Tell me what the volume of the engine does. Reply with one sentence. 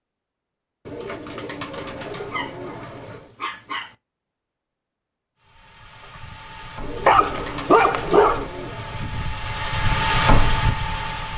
The volume of the engine goes up.